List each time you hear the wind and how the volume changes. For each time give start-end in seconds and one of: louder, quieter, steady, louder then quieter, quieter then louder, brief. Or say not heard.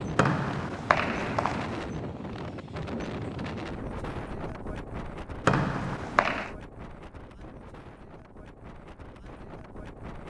0.0-10.2 quieter.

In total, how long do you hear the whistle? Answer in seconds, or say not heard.
3 s.